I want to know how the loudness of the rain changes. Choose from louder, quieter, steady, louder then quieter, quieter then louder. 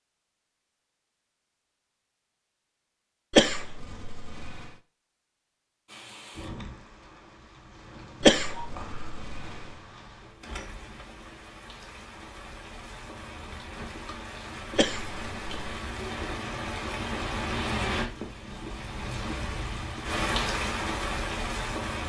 louder.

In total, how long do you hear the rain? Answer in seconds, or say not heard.
16 s.